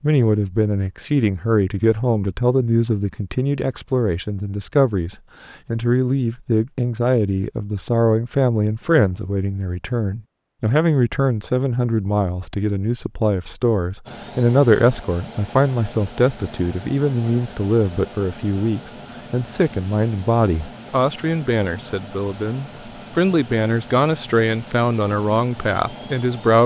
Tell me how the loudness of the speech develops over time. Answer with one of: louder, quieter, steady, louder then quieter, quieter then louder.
steady.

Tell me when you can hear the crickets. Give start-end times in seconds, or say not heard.
not heard.